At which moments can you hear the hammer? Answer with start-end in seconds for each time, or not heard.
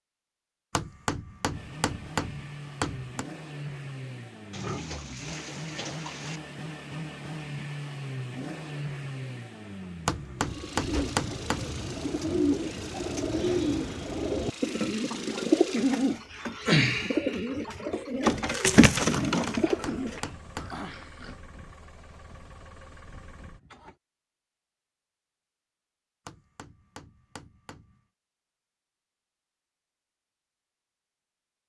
0.7-3.2, 10.1-11.8, 19.2-20.9, 26.2-28.0.